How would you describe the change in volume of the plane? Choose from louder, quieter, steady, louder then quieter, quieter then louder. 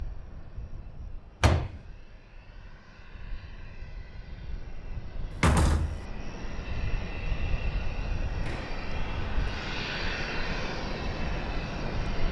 louder.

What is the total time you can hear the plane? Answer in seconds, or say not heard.
12 s.